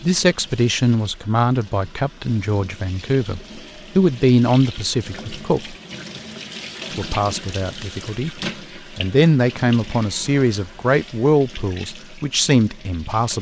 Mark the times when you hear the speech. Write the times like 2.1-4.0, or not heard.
0.0-5.8, 7.0-8.3, 8.9-13.3.